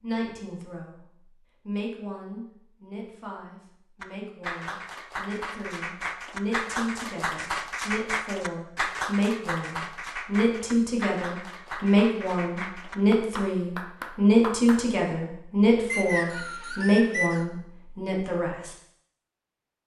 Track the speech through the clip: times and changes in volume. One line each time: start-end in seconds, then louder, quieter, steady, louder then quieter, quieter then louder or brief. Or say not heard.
0.0-1.1 brief
1.6-18.7 louder.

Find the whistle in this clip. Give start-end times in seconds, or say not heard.
15.9-17.4.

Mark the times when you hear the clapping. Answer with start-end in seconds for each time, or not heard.
4.0-14.9.